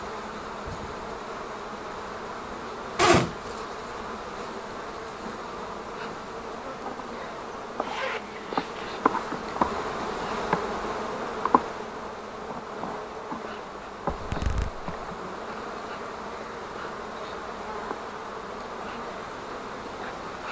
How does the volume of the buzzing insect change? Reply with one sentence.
The loudness of the buzzing insect goes up, then down.